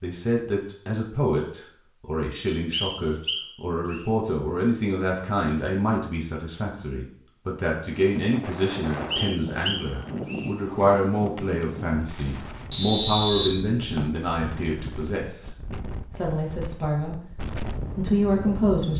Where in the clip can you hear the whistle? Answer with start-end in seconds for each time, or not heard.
2.7-4.0, 9.1-10.5, 12.7-14.2.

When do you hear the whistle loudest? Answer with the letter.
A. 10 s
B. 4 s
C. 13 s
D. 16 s
C.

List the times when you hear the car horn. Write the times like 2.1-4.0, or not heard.
not heard.